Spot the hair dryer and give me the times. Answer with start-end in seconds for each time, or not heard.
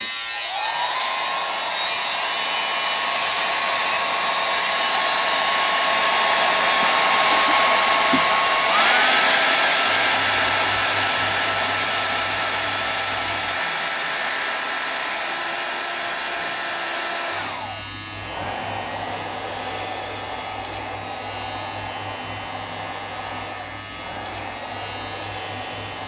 0.0-26.0.